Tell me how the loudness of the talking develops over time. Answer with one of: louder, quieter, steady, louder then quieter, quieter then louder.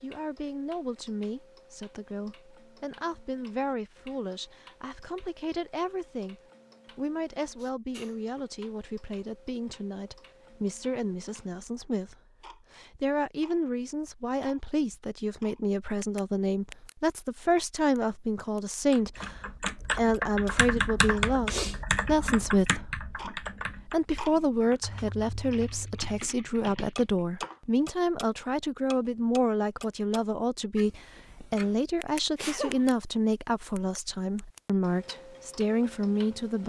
louder.